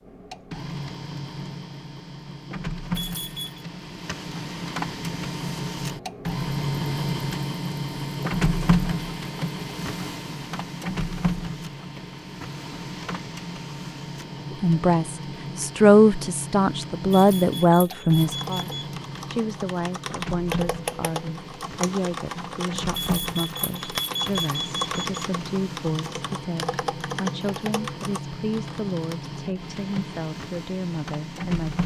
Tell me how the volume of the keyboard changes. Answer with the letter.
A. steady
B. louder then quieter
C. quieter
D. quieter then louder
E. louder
A.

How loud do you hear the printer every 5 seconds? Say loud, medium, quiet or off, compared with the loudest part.
medium, loud, medium, medium, medium, medium, medium.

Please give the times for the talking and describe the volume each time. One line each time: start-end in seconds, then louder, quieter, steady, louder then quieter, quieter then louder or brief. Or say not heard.
14.5-31.8 quieter.